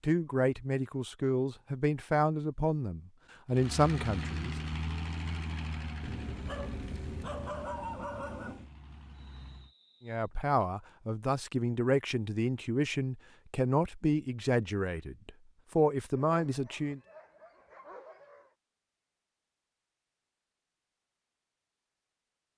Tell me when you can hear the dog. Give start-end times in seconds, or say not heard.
6.0-8.7, 16.1-18.5.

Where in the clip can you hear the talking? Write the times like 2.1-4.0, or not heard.
0.0-4.6, 10.0-17.0.